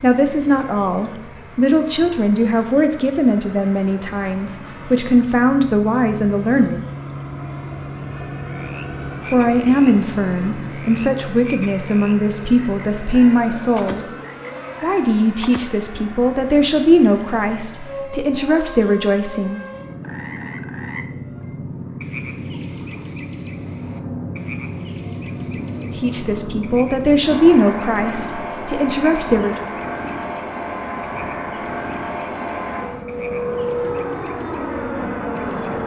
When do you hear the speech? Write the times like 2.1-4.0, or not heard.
0.0-6.8, 9.3-14.1, 14.8-19.6, 25.9-29.6.